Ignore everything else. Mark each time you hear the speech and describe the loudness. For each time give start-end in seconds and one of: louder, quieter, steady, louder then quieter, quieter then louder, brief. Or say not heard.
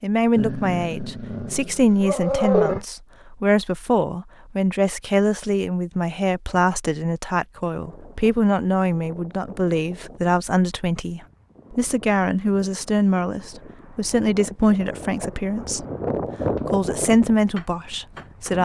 0.0-15.8 steady
16.6-18.5 brief.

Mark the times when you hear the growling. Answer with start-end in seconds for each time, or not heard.
0.3-2.9.